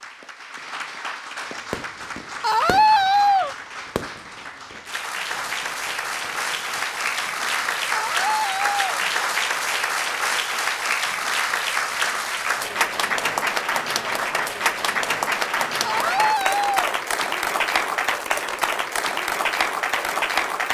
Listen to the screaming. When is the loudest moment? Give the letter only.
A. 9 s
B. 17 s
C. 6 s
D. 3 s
D.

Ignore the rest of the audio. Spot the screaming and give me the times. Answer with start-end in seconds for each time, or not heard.
2.4-3.5, 7.9-8.8, 15.8-16.9.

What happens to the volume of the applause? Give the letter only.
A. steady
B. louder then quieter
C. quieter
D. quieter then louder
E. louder
E.